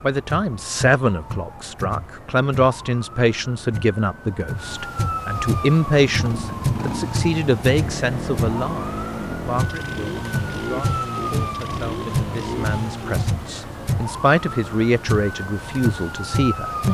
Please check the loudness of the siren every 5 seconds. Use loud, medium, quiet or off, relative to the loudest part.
medium, loud, loud, loud.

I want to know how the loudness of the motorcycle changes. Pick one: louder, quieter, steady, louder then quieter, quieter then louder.
steady.